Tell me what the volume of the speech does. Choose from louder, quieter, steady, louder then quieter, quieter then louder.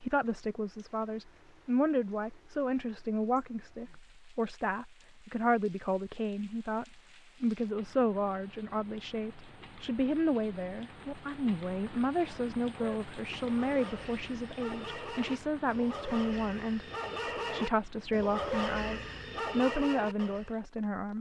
steady.